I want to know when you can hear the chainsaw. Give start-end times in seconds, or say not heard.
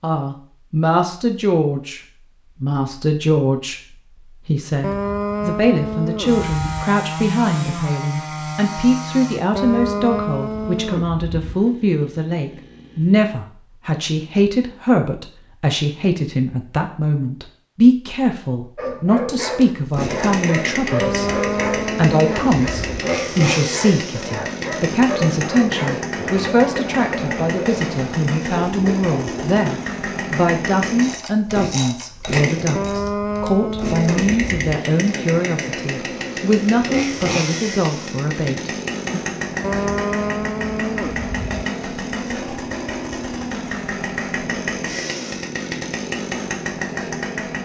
6.2-13.4, 19.5-47.6.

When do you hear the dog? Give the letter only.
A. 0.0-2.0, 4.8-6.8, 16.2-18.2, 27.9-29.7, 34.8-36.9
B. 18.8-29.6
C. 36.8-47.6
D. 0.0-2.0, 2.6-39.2
B.